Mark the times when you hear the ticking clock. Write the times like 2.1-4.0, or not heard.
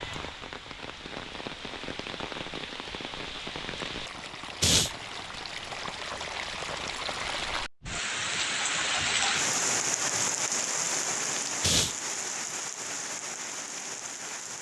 not heard.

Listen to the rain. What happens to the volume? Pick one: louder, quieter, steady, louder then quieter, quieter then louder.
louder then quieter.